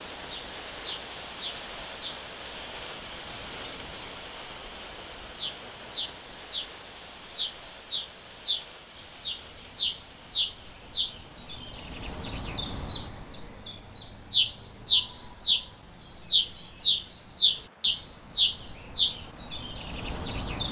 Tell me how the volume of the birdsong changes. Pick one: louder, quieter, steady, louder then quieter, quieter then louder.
louder.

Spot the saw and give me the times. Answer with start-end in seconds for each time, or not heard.
not heard.